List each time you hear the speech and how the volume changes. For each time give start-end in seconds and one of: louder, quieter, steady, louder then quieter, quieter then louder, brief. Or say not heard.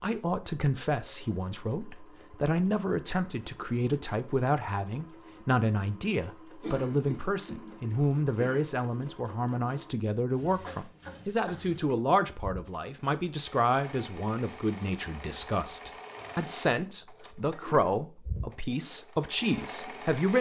0.0-20.3 steady.